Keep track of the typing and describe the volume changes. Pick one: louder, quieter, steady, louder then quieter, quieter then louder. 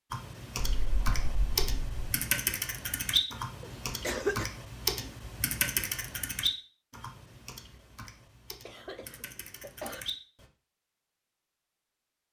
quieter.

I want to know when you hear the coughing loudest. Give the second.
4 s.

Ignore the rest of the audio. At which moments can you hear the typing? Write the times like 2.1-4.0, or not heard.
0.1-10.4.